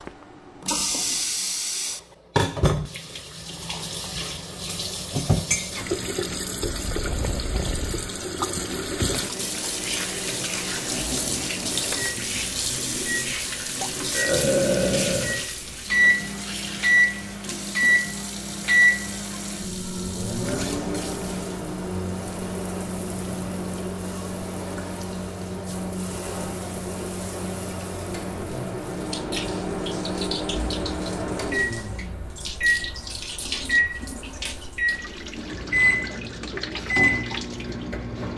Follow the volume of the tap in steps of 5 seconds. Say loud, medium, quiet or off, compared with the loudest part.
loud, loud, loud, medium, medium, medium, medium, medium.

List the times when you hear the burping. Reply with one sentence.
The burping can be heard from 14.1 to 15.4 s.